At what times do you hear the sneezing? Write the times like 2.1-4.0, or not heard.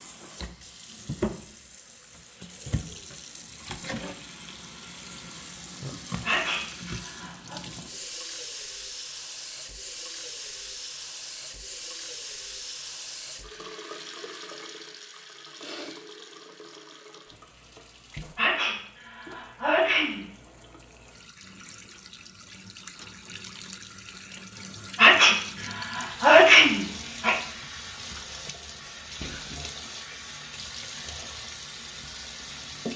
6.2-7.6, 18.4-20.2, 24.9-27.4.